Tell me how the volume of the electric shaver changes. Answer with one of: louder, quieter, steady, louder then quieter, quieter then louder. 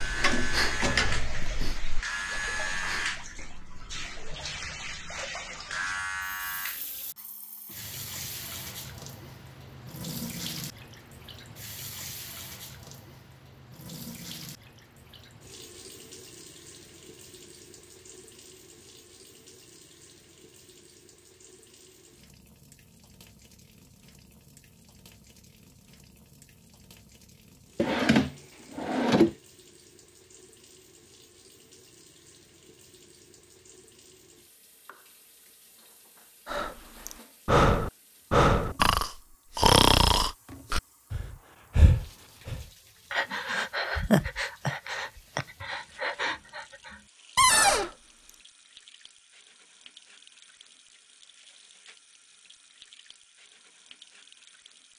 quieter then louder.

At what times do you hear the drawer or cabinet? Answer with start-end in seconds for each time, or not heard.
0.2-1.4, 27.8-29.4, 47.4-47.9.